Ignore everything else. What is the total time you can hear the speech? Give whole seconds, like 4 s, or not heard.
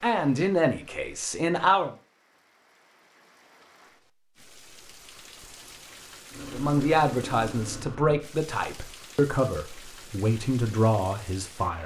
7 s.